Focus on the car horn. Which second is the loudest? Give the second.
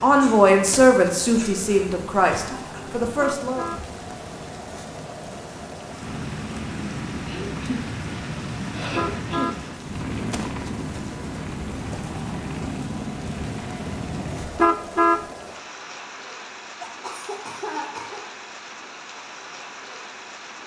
15 s.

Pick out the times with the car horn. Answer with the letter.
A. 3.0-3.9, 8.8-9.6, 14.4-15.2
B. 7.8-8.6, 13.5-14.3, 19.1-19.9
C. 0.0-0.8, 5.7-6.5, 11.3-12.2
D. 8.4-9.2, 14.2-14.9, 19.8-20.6
A.